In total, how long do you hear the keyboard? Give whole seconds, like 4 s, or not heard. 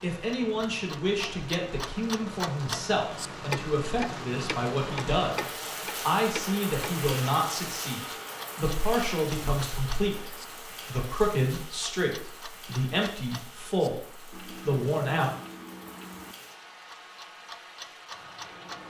not heard.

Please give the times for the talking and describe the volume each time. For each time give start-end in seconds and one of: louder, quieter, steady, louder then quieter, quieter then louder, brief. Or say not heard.
0.0-15.3 steady.